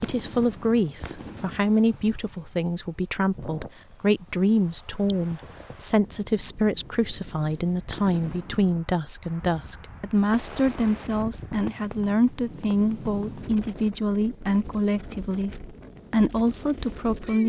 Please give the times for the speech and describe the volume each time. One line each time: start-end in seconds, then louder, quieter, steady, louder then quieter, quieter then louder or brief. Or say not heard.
0.0-17.4 steady.